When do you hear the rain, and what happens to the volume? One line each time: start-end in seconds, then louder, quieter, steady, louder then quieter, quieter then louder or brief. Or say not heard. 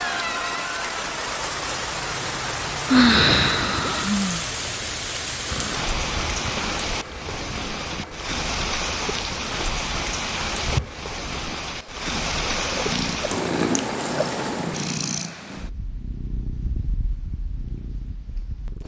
0.0-15.1 steady.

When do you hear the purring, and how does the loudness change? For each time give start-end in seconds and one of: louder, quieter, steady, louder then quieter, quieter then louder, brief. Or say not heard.
5.5-18.8 louder then quieter.